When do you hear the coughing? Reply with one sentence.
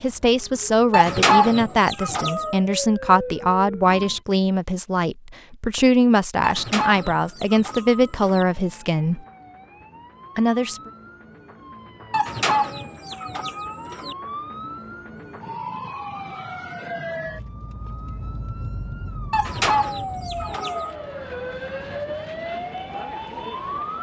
The coughing can't be heard in this clip.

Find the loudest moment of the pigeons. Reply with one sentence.
The volume of the pigeons peaks at 1 second.